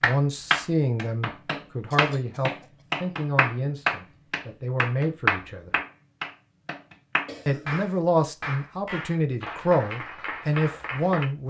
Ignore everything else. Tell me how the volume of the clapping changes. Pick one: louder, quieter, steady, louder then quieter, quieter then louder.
quieter.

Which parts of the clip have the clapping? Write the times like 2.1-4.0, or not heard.
0.0-11.3.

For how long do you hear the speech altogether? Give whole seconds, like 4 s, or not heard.
10 s.